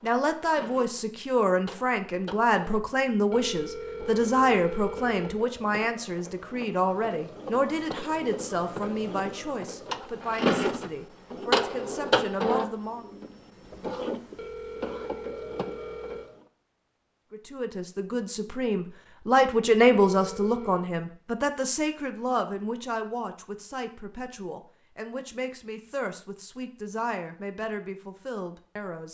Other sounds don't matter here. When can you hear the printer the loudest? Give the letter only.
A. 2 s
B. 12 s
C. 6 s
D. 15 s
B.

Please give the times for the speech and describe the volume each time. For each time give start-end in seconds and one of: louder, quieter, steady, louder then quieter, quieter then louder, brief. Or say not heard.
0.0-13.1 quieter
17.3-29.0 quieter.